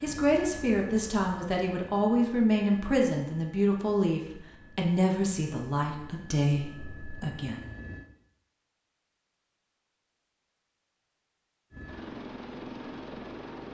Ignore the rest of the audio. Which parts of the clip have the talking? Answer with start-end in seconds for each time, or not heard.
0.0-7.6.